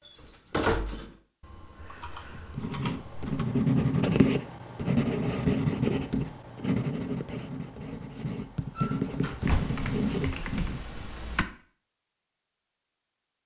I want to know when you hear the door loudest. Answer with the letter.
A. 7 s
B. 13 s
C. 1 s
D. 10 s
C.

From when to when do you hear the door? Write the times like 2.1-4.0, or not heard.
0.1-1.1, 8.8-9.7.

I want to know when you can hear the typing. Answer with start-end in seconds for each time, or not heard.
1.4-3.5, 9.4-11.4.